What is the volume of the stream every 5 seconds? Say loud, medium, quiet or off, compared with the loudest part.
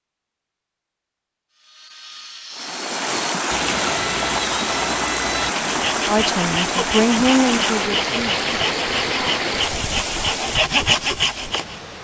loud, loud, medium.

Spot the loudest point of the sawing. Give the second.
11 s.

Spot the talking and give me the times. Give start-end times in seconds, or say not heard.
6.0-8.4.